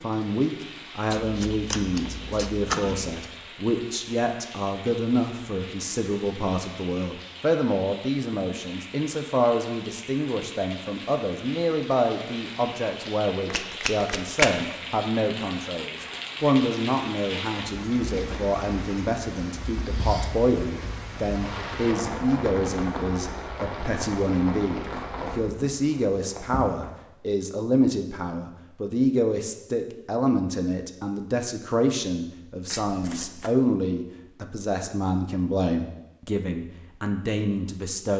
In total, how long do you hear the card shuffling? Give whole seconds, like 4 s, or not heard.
4 s.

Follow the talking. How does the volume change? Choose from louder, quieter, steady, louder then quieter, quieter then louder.
steady.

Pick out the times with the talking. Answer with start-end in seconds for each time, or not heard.
0.0-38.1.